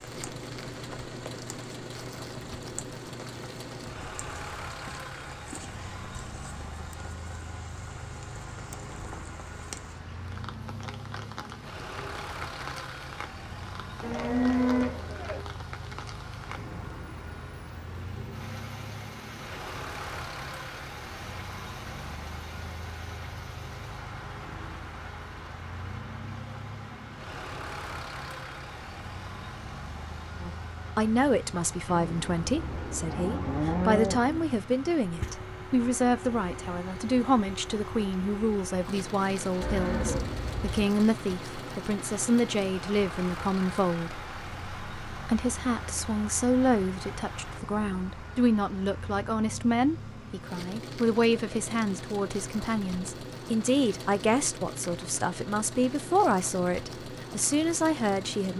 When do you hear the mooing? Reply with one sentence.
You can hear the mooing from 14.0 to 15.4 s, from 31.9 to 34.5 s and from 39.6 to 40.9 s.